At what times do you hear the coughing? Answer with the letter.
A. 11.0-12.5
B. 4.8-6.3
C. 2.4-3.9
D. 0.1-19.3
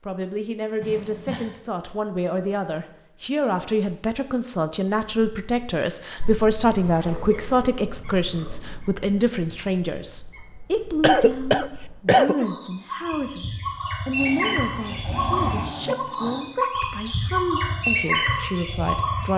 A.